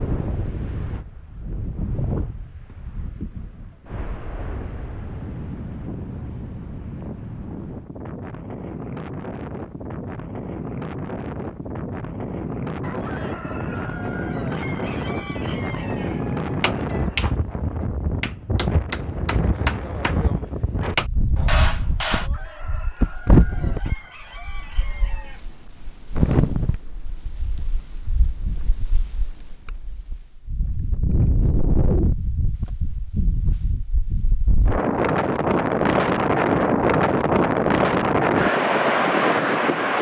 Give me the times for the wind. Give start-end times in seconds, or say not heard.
0.0-39.9.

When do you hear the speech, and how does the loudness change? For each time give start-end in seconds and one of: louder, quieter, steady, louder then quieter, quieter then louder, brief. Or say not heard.
not heard.